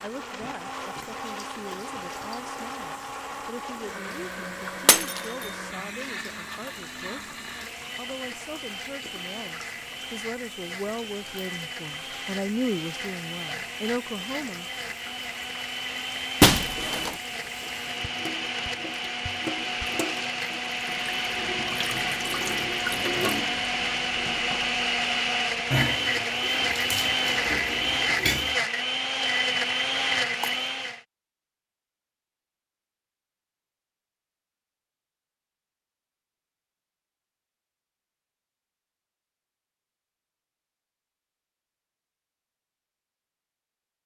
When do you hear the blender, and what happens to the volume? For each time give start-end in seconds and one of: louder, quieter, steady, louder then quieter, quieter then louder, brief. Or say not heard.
0.0-31.0 louder.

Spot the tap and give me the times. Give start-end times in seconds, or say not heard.
0.0-28.6.